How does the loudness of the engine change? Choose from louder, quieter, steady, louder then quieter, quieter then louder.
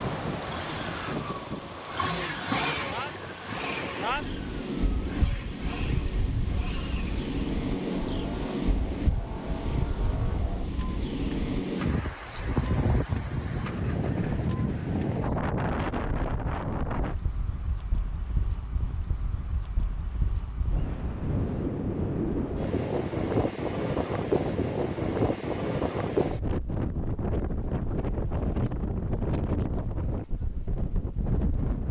quieter.